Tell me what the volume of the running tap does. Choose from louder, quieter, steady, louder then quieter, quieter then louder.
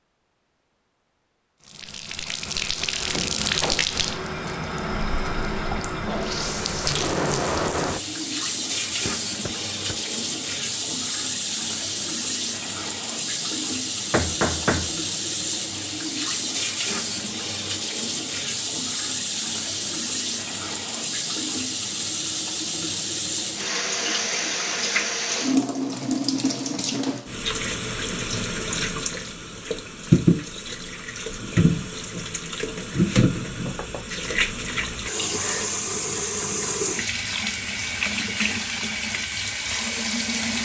steady.